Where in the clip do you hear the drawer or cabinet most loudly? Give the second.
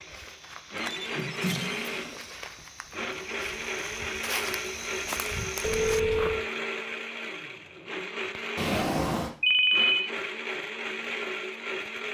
9 s.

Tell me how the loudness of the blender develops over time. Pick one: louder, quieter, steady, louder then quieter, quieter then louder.
steady.